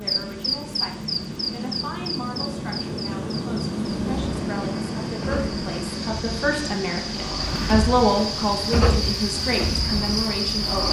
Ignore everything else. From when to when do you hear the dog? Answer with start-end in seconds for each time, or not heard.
not heard.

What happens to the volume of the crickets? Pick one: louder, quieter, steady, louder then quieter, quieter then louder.
quieter then louder.